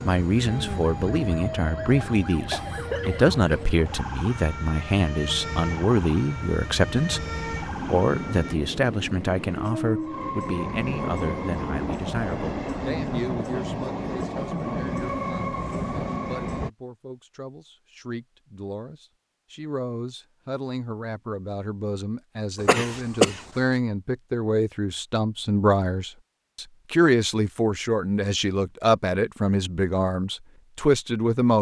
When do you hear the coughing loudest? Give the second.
23 s.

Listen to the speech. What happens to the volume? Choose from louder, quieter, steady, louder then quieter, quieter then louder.
quieter then louder.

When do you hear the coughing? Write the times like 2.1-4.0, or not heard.
2.5-3.6, 22.6-23.4.